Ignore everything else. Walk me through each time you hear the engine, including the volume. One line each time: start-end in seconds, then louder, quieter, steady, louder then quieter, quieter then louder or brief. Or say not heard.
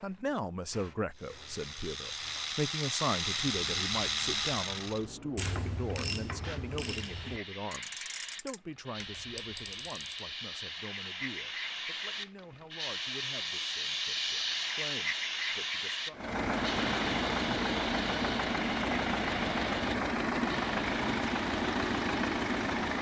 16.1-22.9 steady.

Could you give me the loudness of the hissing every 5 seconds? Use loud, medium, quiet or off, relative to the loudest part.
quiet, medium, loud, loud, medium.